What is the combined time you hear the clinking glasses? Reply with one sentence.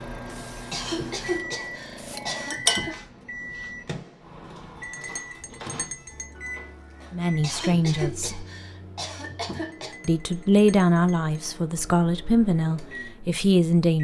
You can hear the clinking glasses for 4 seconds altogether.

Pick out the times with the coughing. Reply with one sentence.
The coughing can be heard from 0.6 to 3.0 s and from 7.4 to 9.9 s.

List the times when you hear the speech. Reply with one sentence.
The speech can be heard from 7.1 to 8.4 s and from 10.1 to 13.9 s.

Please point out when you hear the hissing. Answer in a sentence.
You can hear the hissing from 0.0 to 2.5 s.